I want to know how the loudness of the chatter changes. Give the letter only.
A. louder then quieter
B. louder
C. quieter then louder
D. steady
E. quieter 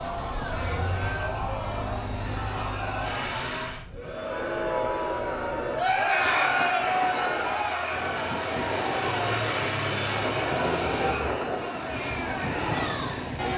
A.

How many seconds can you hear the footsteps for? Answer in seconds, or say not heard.
not heard.